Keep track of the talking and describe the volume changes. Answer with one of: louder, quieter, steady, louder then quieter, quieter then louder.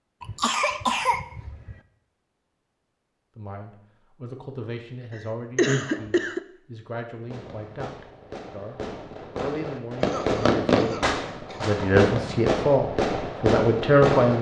louder.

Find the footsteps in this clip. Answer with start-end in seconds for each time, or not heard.
not heard.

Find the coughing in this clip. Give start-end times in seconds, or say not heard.
0.2-1.8, 5.1-6.4, 10.0-11.7.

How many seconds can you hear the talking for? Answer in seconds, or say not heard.
11 s.